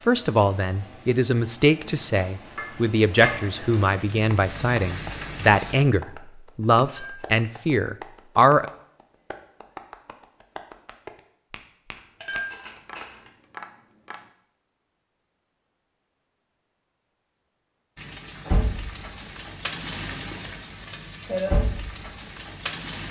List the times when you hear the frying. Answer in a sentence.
You can hear the frying from 0.0 to 5.8 s and from 17.9 to 23.0 s.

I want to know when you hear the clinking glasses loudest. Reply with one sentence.
The loudest moment of the clinking glasses is at 12 seconds.